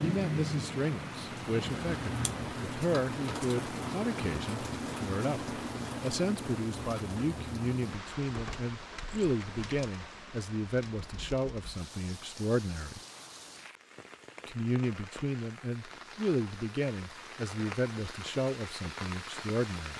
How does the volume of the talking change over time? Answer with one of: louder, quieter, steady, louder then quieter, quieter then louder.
steady.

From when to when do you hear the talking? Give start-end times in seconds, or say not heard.
0.0-13.0, 14.4-19.9.